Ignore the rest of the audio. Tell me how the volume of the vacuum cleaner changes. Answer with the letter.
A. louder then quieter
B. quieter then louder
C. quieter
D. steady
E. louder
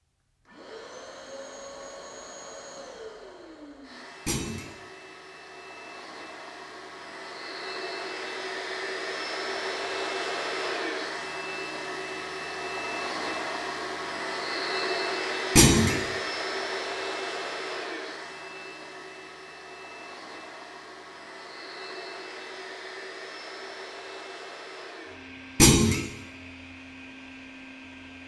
A.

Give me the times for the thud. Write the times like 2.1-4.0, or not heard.
4.2-4.7, 15.6-16.0, 25.6-26.0.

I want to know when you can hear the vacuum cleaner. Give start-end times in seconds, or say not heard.
0.5-28.2.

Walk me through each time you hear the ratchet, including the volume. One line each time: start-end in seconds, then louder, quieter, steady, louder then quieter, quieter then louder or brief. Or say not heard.
not heard.